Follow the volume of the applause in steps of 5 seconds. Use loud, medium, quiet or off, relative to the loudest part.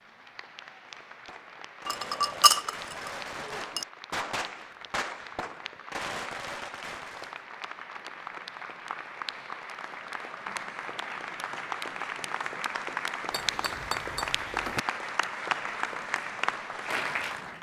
quiet, medium, loud, loud.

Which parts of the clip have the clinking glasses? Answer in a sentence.
The clinking glasses can be heard from 1.9 to 3.9 s and from 13.3 to 14.8 s.